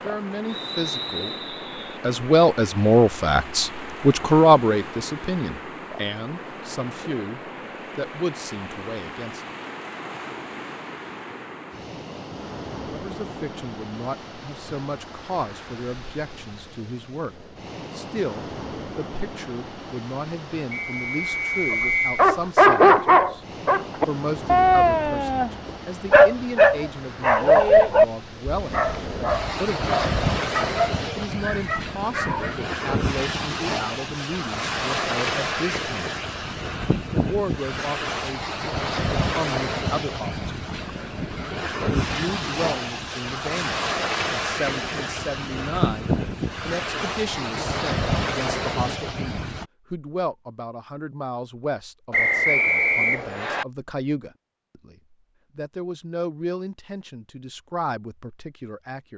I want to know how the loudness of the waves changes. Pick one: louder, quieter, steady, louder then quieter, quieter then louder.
louder.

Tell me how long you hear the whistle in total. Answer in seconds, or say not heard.
5 s.